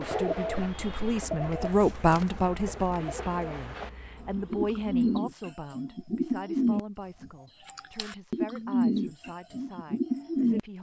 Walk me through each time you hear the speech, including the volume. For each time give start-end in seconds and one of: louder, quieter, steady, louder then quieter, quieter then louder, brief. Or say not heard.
0.0-10.7 quieter.